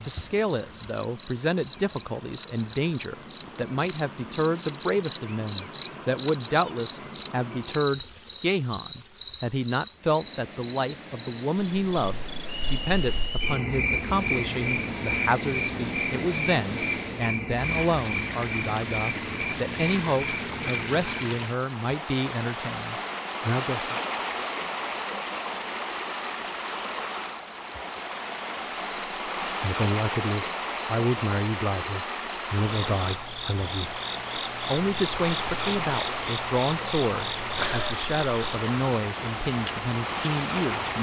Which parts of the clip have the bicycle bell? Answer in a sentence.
You can't hear the bicycle bell here.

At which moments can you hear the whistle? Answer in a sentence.
You can hear the whistle from 12.4 to 13.6 s.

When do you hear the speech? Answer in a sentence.
The speech can be heard from 0.1 to 24.0 s, from 29.6 to 34.0 s and from 34.7 to 40.9 s.